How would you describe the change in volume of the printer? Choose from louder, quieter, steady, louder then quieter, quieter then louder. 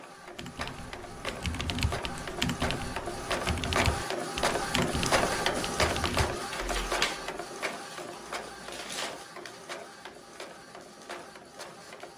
louder then quieter.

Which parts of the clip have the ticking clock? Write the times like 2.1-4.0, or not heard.
not heard.